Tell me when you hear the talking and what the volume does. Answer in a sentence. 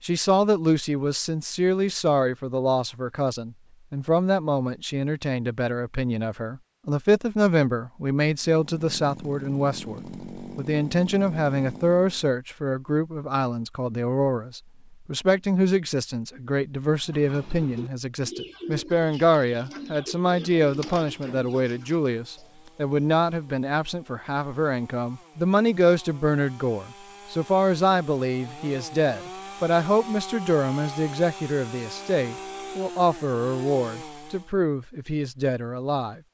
The talking can be heard from 0.0 to 36.2 s, at a steady volume.